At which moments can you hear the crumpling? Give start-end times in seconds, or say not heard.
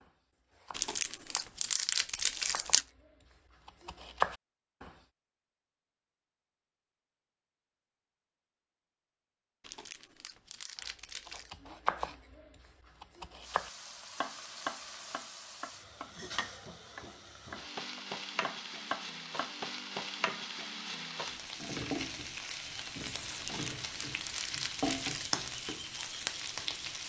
0.7-2.9, 9.6-11.5, 23.4-25.4.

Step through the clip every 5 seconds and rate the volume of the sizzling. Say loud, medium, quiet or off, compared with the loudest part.
off, off, medium, medium, loud, loud.